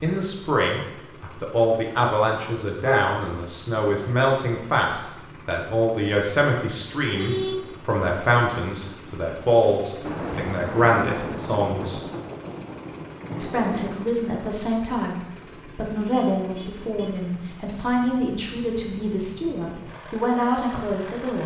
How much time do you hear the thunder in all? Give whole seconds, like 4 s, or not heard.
4 s.